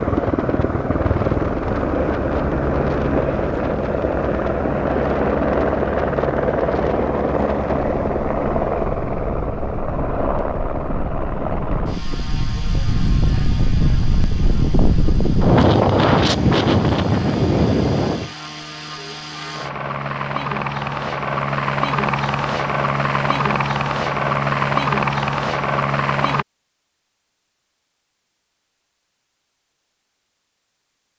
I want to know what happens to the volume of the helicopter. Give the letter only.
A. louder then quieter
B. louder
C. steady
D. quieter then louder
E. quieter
D.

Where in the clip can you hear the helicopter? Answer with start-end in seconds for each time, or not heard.
0.0-26.4.